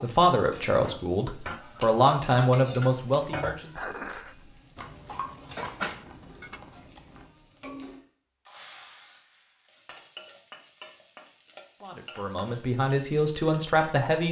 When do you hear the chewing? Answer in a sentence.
The chewing can be heard from 4.8 to 7.3 s.